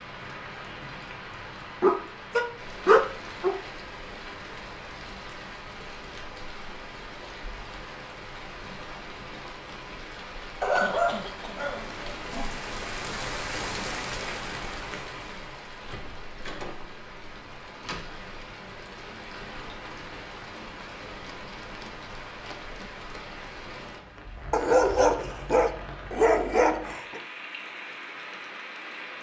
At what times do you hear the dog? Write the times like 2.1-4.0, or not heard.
1.8-3.5, 10.6-12.6, 24.5-27.2.